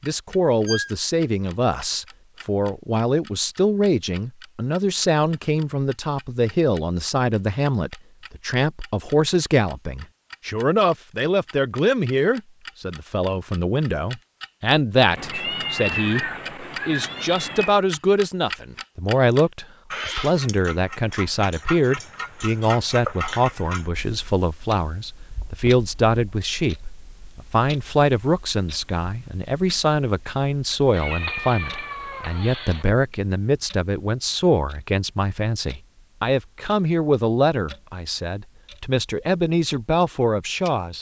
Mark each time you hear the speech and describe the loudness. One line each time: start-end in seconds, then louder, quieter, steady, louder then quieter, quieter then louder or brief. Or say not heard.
0.0-40.9 steady.